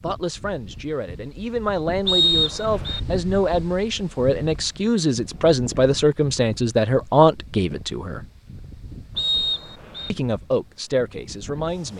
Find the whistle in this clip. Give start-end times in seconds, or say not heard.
2.0-3.0, 9.2-10.1.